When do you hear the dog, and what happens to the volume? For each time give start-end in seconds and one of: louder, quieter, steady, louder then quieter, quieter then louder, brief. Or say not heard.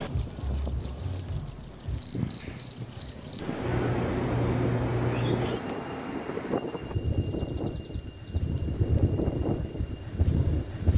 not heard.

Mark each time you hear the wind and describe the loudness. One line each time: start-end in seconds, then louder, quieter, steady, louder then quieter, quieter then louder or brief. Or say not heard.
0.0-10.9 louder.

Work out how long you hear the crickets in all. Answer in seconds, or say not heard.
11 s.